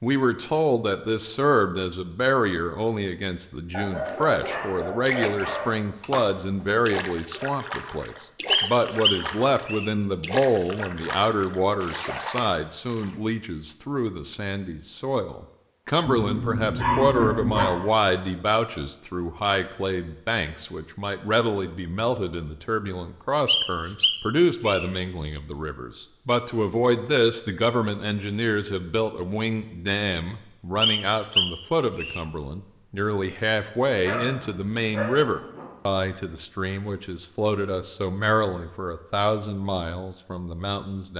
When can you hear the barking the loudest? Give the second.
17 s.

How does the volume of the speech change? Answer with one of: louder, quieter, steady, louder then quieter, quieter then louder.
steady.